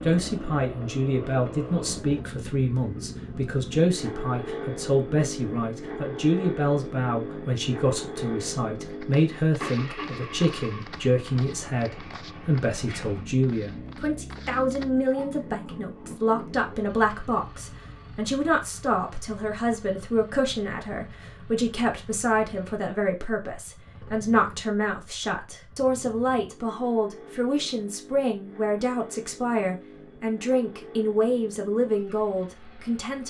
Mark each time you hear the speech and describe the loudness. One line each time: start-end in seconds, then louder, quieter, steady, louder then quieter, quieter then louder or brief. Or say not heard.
0.0-33.2 steady.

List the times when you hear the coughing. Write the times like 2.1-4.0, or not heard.
not heard.